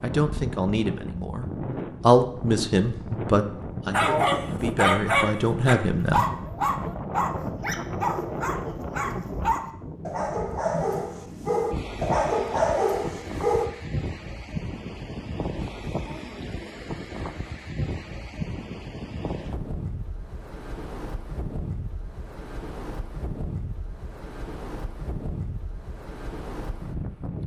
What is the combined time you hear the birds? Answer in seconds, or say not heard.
not heard.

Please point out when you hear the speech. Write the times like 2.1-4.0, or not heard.
0.0-6.2.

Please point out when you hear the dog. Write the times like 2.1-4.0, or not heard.
3.9-13.7.